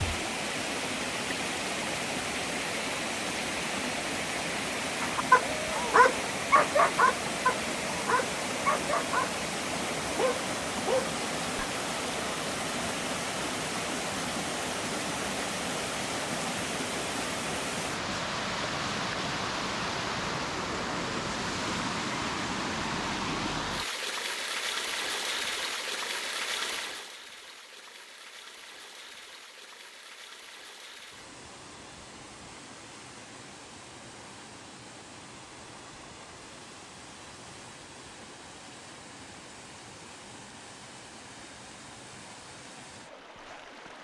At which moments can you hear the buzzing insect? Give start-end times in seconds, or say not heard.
not heard.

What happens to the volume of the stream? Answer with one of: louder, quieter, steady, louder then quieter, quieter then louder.
quieter.